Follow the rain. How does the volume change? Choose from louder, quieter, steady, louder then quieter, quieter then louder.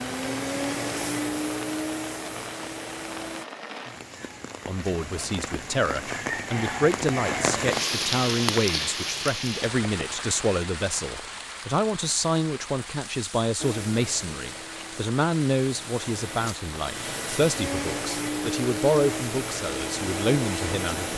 louder then quieter.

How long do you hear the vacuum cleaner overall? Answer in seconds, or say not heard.
11 s.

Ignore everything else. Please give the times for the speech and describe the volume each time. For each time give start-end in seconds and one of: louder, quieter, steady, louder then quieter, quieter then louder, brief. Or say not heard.
4.7-21.1 steady.